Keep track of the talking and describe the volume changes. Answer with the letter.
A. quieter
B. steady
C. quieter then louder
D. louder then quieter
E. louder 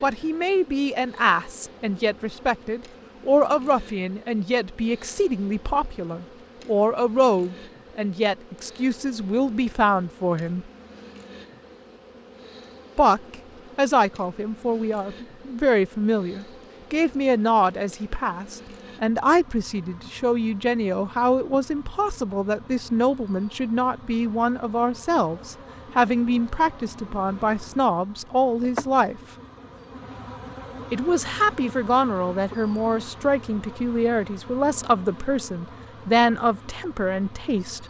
B.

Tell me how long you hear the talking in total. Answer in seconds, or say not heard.
34 s.